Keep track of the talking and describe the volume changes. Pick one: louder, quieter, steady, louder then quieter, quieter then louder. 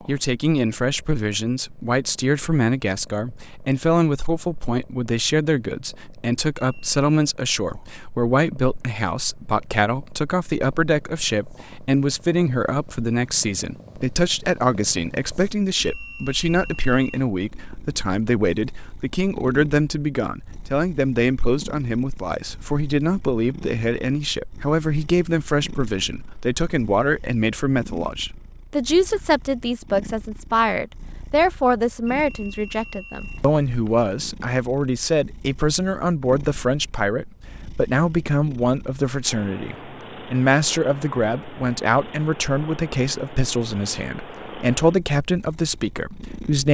steady.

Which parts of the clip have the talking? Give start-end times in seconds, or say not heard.
0.1-46.7.